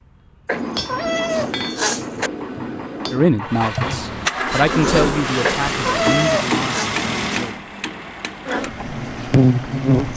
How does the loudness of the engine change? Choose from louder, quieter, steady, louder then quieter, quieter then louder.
louder then quieter.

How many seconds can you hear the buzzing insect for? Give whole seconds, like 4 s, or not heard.
3 s.